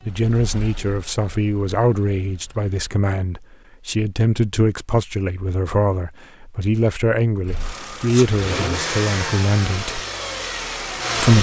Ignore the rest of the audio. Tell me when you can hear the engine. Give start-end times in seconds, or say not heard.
0.0-2.8, 7.5-11.3.